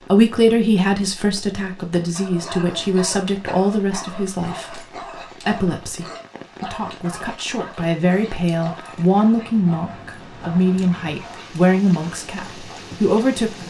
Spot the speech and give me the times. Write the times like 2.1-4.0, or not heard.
0.0-13.6.